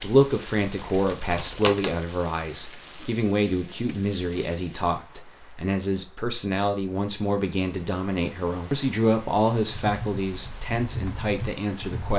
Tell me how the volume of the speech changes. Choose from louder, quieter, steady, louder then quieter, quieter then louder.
steady.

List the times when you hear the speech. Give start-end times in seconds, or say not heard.
0.0-12.1.